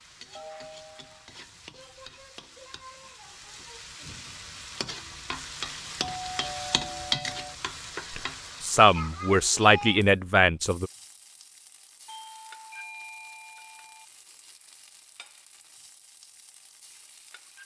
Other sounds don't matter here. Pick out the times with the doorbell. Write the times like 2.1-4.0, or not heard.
0.3-2.1, 6.2-7.5, 12.1-14.1.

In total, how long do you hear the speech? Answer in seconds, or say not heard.
3 s.